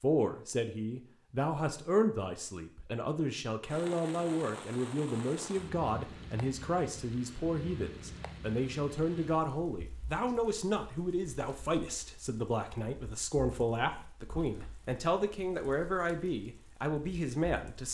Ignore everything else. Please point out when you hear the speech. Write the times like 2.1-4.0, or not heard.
0.0-17.9.